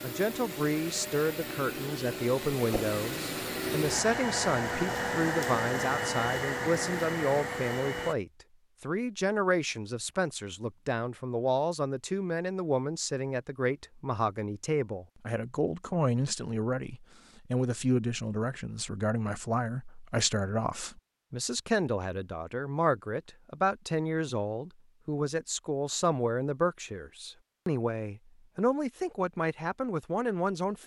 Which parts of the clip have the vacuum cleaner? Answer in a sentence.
The vacuum cleaner can be heard from 0.0 to 8.2 s.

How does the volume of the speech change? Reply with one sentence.
The loudness of the speech stays about the same.